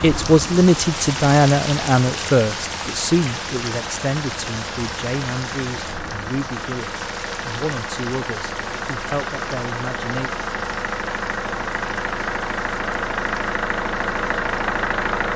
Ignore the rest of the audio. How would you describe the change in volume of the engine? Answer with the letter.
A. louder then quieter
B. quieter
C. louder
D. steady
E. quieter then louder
C.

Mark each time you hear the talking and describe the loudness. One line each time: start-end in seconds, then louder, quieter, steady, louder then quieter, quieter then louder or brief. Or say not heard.
0.0-10.3 quieter.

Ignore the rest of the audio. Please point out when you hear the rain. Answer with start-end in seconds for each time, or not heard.
0.0-15.3.